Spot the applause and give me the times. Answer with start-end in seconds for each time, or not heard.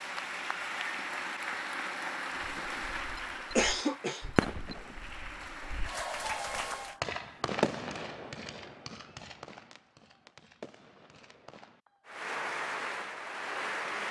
0.0-7.0, 12.1-14.0.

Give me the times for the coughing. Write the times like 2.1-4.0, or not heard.
3.1-4.8.